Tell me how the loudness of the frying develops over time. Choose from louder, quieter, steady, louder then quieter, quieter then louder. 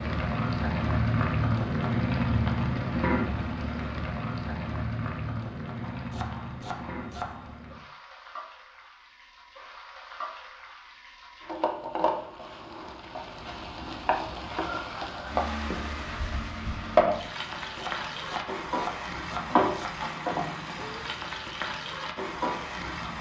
quieter then louder.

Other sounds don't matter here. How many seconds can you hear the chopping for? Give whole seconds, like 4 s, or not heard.
4 s.